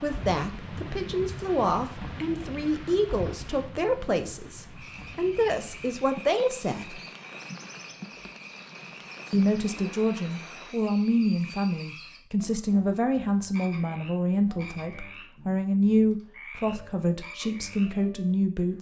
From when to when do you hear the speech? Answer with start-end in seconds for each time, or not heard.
0.0-7.0, 9.3-18.7.